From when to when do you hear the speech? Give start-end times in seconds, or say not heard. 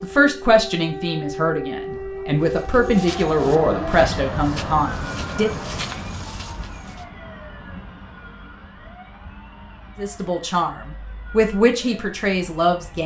0.0-5.6, 9.9-13.0.